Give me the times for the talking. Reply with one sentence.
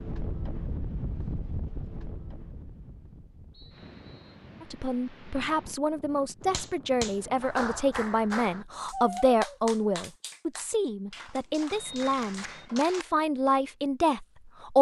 The talking can be heard from 4.6 to 14.7 s.